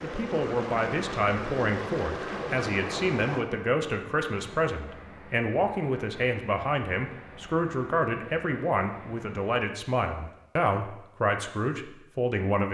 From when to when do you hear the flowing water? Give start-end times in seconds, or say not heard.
0.0-9.6.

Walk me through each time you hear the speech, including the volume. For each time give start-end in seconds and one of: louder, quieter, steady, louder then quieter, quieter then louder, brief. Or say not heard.
0.0-12.6 steady.